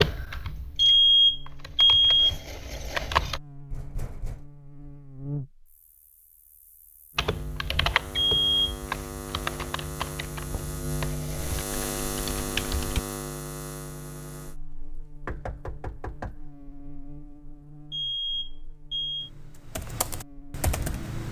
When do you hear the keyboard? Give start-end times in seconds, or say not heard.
0.0-3.4, 7.2-13.0, 19.1-21.2.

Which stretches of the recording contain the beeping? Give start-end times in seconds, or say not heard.
0.8-2.4, 8.2-8.8, 17.9-19.3.